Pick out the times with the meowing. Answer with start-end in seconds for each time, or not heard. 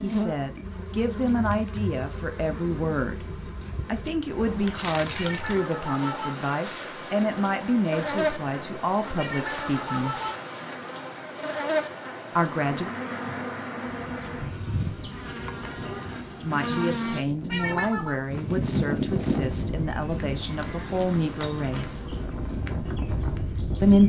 5.2-6.3, 9.2-10.3, 17.4-18.2.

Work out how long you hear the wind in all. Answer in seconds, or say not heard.
20 s.